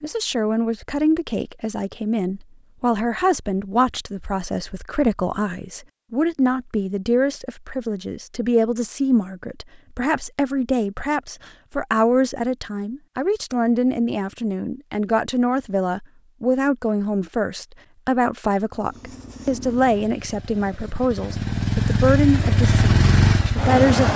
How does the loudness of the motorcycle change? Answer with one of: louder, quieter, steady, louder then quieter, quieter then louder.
quieter then louder.